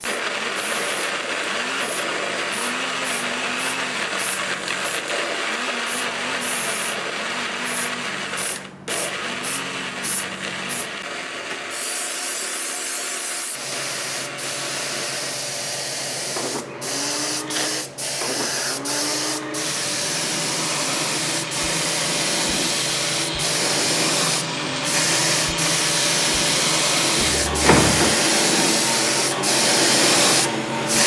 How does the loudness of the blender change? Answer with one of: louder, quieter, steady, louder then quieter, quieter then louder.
quieter then louder.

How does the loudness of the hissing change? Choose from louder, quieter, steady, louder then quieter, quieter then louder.
louder.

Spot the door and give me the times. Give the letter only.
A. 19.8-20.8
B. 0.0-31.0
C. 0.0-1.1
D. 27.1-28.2
D.